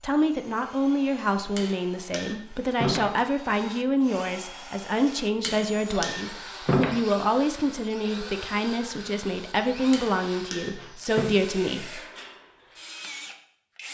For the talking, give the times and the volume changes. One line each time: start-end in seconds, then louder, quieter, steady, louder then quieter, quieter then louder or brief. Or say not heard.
0.0-12.0 steady.